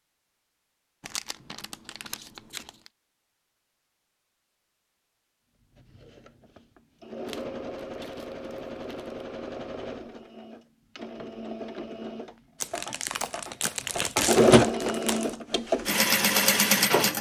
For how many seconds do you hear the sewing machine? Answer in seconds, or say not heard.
11 s.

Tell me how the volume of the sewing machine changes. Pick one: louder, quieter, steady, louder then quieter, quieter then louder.
louder.